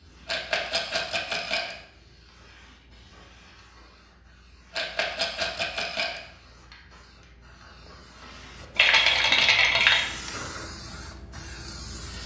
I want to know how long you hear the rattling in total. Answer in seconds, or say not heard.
4 s.